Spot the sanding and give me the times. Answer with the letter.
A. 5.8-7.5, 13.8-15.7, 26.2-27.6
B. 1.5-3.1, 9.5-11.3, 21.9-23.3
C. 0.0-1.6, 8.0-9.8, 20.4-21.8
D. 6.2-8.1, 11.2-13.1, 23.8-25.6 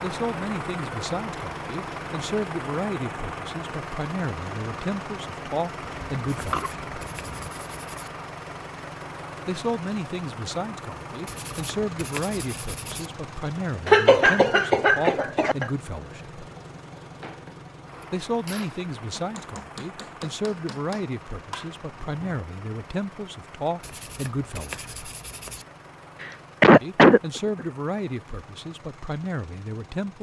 D.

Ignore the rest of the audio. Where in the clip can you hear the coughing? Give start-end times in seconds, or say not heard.
5.8-7.5, 13.8-15.7, 26.2-27.6.